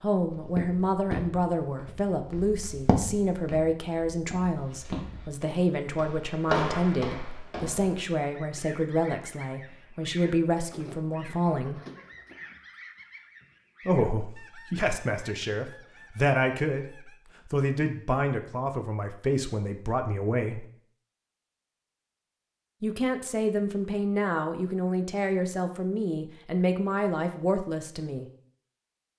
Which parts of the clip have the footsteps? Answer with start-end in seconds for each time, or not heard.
0.3-8.0.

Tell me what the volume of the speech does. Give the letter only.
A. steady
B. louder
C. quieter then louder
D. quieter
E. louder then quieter
A.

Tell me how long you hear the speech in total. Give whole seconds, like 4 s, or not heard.
24 s.